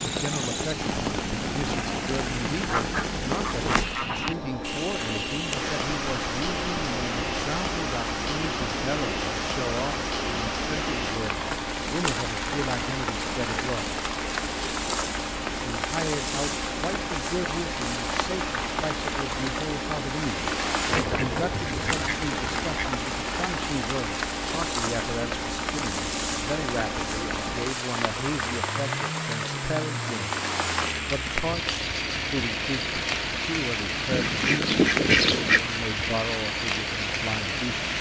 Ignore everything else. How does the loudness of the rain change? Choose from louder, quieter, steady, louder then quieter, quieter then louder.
steady.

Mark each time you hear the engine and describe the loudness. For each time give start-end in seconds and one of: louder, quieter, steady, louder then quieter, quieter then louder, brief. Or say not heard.
0.0-37.9 steady.